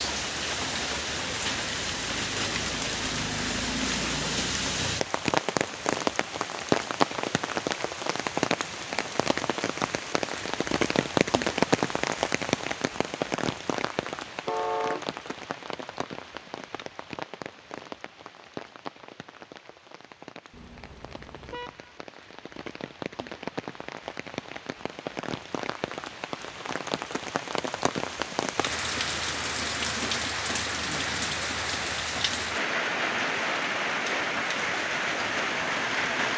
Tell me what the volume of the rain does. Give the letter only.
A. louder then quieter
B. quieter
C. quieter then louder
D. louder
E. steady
C.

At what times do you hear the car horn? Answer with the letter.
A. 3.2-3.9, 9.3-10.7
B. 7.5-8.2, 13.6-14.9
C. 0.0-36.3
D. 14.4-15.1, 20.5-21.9
D.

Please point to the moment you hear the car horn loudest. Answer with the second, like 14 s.
15 s.